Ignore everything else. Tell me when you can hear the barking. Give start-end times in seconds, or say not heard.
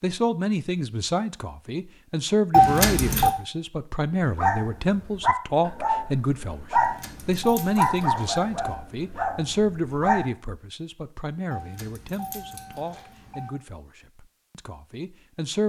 4.3-10.3.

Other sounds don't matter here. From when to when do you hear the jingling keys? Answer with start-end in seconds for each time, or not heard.
2.5-3.4, 6.8-8.8, 11.5-13.5.